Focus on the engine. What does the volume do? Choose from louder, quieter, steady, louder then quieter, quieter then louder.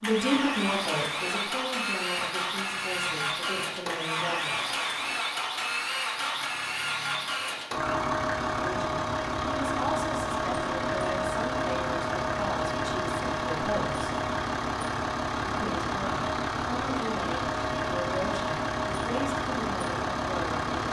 steady.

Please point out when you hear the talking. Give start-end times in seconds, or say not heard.
0.0-4.7, 8.6-14.2, 15.4-20.6.